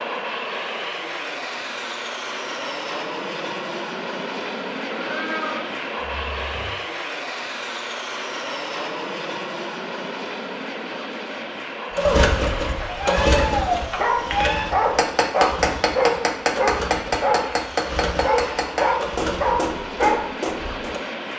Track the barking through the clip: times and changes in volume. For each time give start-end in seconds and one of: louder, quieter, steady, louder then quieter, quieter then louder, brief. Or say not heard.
11.9-21.0 steady.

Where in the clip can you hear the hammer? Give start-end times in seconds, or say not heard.
14.2-20.9.